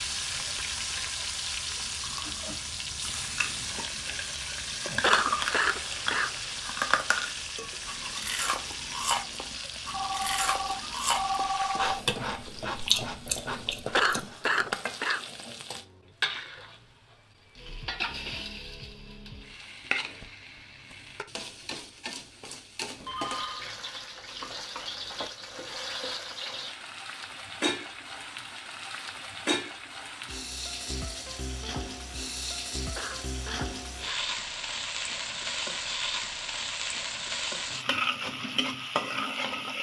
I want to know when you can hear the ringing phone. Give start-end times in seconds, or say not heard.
9.9-11.9, 23.0-23.6.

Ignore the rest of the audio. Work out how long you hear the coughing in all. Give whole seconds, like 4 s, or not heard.
4 s.